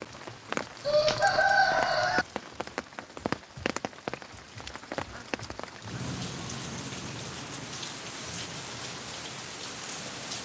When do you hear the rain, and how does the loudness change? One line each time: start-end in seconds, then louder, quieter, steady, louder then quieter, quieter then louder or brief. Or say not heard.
0.0-10.4 steady.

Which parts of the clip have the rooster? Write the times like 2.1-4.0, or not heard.
0.8-2.2.